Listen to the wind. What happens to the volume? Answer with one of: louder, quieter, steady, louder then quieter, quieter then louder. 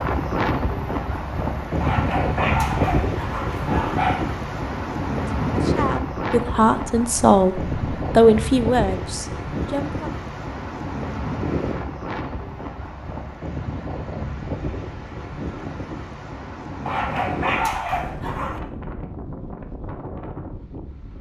quieter.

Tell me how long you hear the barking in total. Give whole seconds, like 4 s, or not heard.
4 s.